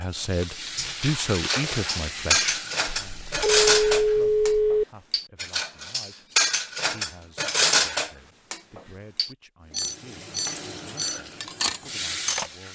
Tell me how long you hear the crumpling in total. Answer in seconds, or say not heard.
2 s.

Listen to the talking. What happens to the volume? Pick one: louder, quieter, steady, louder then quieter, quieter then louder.
quieter.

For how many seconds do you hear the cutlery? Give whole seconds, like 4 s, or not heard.
12 s.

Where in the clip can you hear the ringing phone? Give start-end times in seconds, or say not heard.
3.0-4.8.